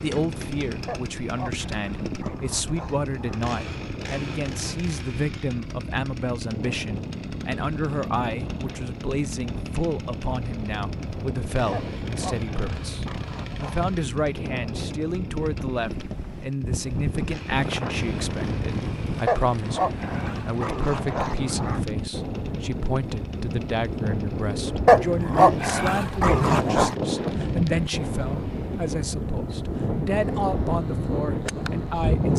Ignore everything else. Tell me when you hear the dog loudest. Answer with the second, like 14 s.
25 s.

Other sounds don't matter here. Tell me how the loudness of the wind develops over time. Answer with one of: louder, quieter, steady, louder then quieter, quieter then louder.
louder.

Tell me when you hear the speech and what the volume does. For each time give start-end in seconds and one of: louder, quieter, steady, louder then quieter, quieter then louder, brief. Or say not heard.
0.0-32.3 steady.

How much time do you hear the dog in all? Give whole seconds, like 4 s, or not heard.
10 s.